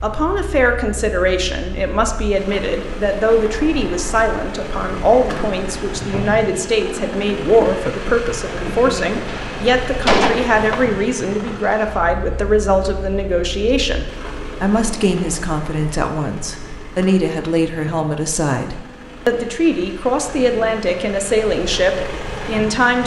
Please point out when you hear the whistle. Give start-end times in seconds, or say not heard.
not heard.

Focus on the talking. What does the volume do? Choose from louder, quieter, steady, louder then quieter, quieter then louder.
steady.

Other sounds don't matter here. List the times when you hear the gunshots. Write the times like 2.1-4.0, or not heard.
9.2-10.8.